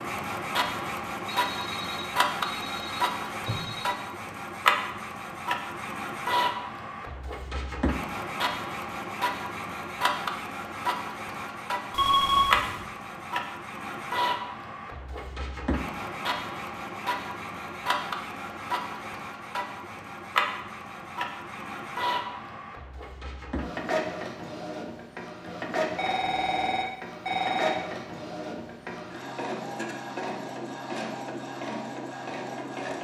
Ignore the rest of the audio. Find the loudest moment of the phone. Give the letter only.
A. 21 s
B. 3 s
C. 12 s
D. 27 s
C.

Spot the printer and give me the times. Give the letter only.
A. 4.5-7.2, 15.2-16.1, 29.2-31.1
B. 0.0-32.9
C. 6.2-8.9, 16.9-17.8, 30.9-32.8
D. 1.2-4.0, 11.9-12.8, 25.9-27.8
B.